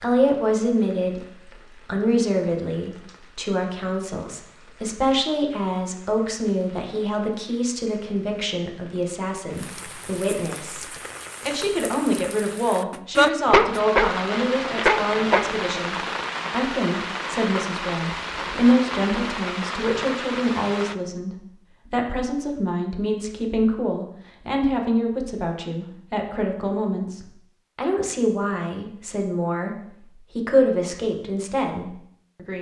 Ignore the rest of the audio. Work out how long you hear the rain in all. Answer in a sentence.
You can hear the rain for 21 seconds altogether.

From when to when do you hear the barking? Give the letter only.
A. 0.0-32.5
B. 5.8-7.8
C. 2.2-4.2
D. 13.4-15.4
D.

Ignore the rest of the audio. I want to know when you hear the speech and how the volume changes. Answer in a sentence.
You can hear the speech from 0.0 to 32.5 s, at a steady volume.